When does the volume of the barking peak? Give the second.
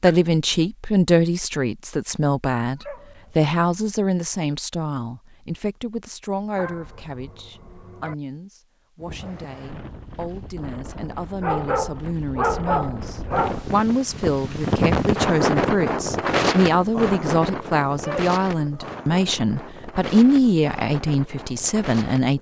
13 s.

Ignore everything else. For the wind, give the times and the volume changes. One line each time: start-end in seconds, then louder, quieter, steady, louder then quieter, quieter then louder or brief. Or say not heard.
8.9-22.3 louder then quieter.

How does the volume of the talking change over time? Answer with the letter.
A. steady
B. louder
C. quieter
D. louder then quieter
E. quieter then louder
E.